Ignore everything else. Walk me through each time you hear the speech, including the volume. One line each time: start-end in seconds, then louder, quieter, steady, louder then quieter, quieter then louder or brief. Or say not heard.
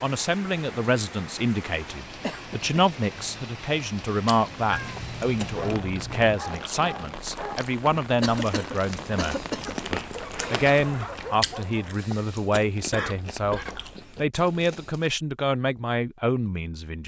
0.0-17.0 steady.